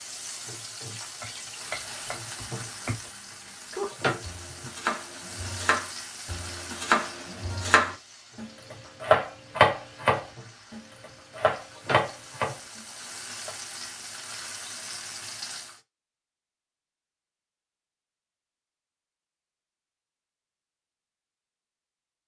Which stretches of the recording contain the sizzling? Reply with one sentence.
You can hear the sizzling from 0.0 to 15.8 s.